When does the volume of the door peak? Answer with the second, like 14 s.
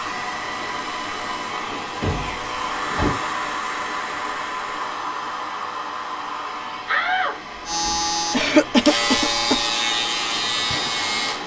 7 s.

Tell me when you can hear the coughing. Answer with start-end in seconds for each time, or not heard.
8.3-9.6.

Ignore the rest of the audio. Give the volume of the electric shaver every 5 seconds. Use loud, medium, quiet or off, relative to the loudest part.
off, loud, loud.